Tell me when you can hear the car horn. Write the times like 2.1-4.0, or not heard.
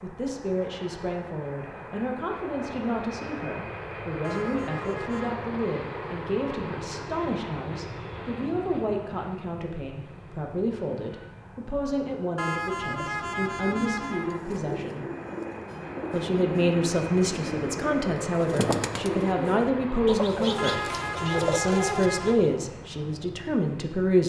4.2-5.3, 12.3-14.4, 20.6-22.4.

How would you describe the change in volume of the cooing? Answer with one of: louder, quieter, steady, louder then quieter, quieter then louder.
louder.